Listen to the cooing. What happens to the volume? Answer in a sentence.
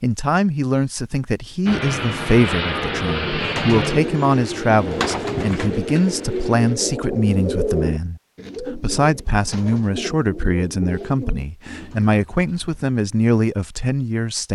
The loudness of the cooing goes down.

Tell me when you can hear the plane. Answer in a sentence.
You can hear the plane from 1.6 to 6.8 s.